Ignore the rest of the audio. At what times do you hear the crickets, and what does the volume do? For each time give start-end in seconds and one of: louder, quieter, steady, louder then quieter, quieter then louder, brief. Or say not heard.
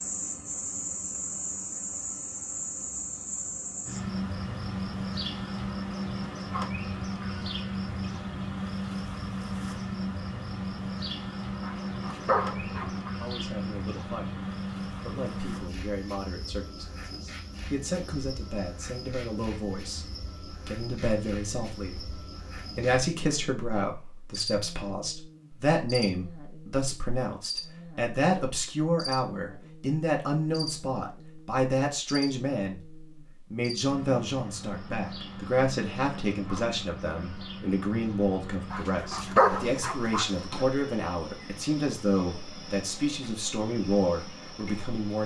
0.0-45.2 quieter.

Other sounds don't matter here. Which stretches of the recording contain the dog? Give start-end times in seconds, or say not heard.
11.6-13.1, 38.7-40.6.